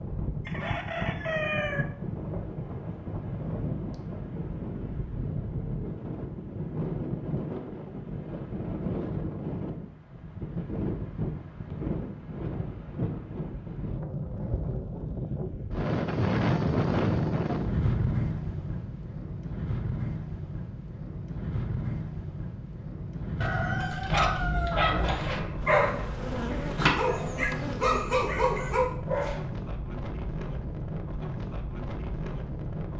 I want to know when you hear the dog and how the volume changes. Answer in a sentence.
The dog can be heard from 24.0 to 29.4 s, at a steady volume.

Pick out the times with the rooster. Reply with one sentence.
The rooster can be heard from 0.5 to 1.9 s and from 23.4 to 25.4 s.